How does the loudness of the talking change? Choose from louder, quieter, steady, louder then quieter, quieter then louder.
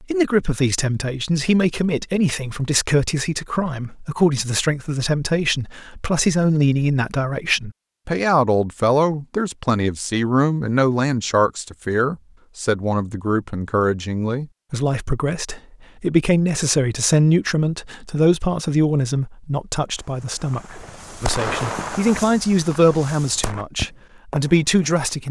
steady.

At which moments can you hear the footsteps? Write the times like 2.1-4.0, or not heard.
not heard.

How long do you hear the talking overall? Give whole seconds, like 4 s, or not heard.
25 s.